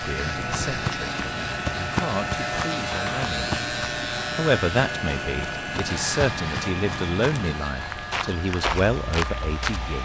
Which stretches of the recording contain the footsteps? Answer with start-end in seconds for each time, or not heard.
0.1-9.9.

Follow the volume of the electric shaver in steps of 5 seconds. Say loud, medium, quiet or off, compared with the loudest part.
loud, medium.